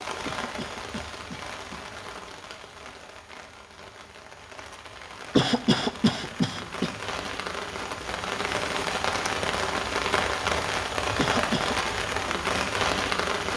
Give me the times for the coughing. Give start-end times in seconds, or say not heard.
0.2-1.8, 5.3-6.9, 11.2-11.9.